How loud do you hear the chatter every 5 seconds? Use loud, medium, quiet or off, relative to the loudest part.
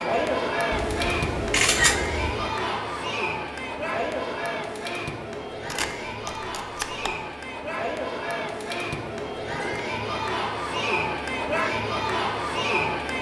loud, medium, loud.